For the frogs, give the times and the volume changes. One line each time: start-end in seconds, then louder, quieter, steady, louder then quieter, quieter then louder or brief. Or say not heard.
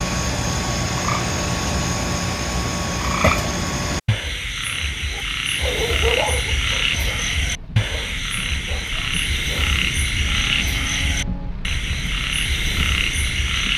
0.0-13.7 steady.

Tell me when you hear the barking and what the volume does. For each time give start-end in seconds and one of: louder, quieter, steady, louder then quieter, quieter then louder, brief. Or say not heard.
4.9-11.6 quieter.